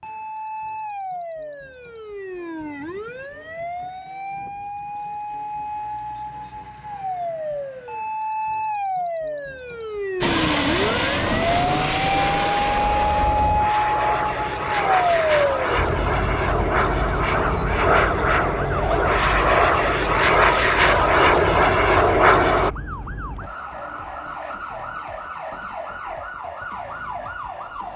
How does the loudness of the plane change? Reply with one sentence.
The loudness of the plane goes up.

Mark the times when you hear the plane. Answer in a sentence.
You can hear the plane from 10.2 to 22.7 s.